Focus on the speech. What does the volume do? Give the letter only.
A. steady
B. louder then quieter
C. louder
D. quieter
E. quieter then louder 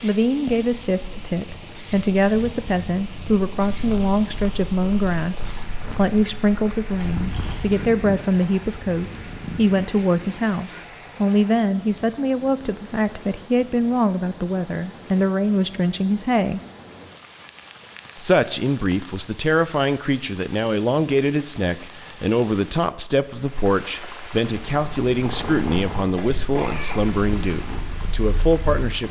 A.